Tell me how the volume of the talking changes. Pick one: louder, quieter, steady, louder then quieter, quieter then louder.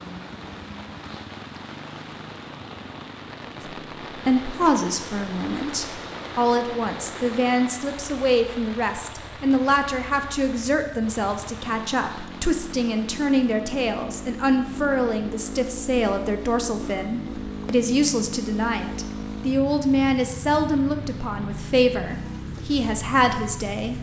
steady.